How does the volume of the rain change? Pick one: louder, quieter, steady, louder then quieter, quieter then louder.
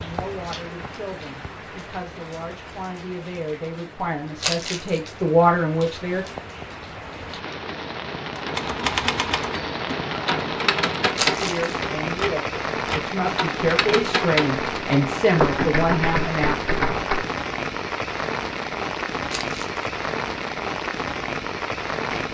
louder.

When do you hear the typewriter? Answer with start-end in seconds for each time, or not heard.
8.3-17.3.